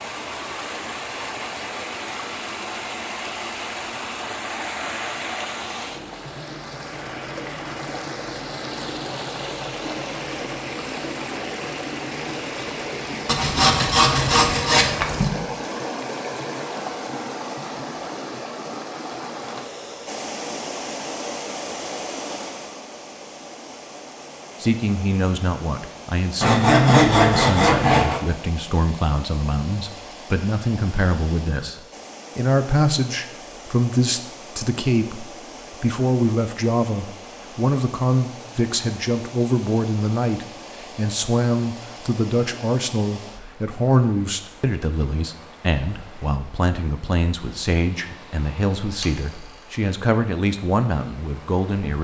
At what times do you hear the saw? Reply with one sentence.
The saw can be heard from 13.2 to 15.3 s, from 26.4 to 28.2 s and from 48.0 to 49.6 s.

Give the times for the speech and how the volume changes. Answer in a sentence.
You can hear the speech from 24.6 to 52.0 s, at a steady volume.